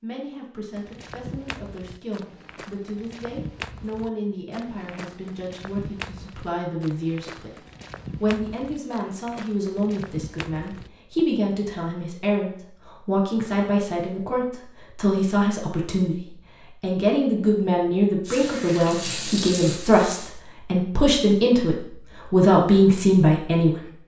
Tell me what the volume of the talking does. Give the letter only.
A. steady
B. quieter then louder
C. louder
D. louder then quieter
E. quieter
C.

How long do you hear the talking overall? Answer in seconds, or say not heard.
23 s.